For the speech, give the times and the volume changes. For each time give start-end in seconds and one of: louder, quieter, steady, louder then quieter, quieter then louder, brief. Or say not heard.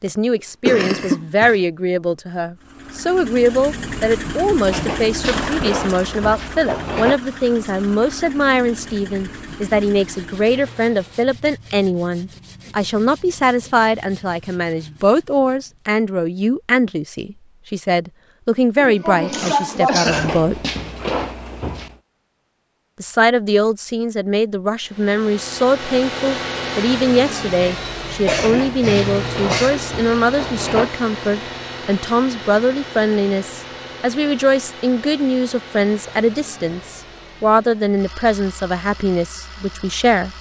0.0-20.6 steady
23.0-40.3 steady.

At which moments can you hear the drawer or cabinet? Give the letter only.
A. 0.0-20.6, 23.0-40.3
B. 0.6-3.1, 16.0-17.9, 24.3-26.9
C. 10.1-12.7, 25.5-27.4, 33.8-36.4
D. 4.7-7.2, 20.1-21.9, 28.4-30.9
D.